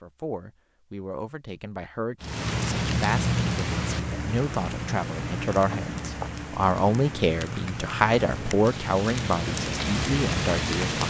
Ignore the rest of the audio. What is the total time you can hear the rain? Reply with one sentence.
You can hear the rain for 9 seconds altogether.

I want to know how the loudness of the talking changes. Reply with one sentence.
The volume of the talking goes up.